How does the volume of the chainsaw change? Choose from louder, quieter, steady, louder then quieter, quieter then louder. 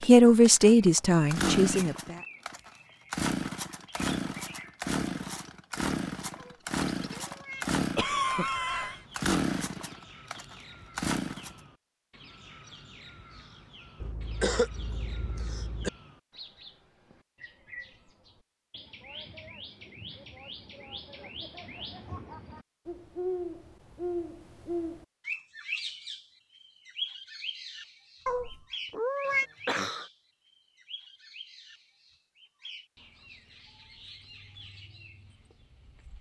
steady.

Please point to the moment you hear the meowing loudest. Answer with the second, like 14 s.
29 s.